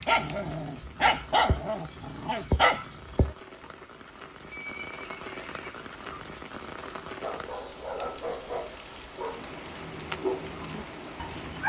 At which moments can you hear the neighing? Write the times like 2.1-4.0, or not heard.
4.5-5.8.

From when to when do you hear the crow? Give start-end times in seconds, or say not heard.
not heard.